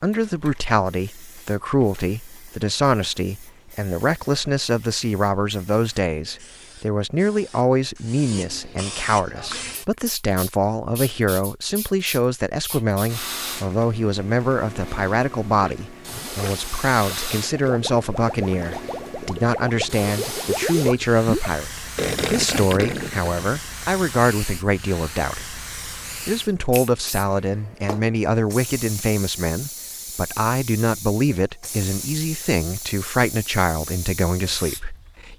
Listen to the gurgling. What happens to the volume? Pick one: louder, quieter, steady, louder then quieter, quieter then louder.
louder.